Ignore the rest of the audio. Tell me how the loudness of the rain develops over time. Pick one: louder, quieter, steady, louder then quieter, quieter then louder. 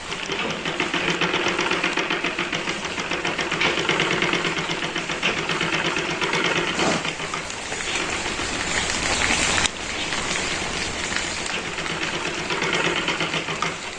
louder then quieter.